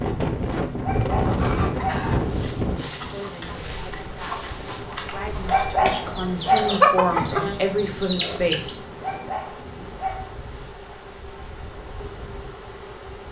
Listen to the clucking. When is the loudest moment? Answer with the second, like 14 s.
7 s.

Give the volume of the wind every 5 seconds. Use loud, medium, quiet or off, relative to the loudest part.
loud, quiet, quiet.